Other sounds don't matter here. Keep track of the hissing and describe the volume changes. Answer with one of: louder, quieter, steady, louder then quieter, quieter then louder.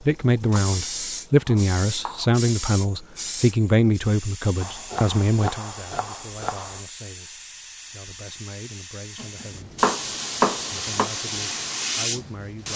quieter then louder.